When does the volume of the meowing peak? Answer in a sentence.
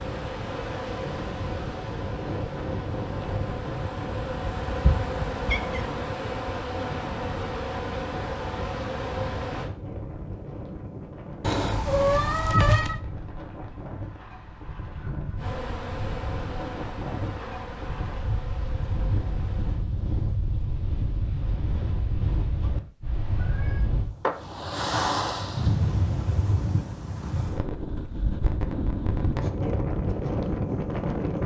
The loudest moment of the meowing is at 13 seconds.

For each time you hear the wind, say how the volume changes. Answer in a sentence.
The wind can be heard from 0.0 to 31.4 s, getting louder.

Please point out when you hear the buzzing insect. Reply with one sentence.
You can hear the buzzing insect from 0.0 to 9.7 s and from 15.3 to 19.9 s.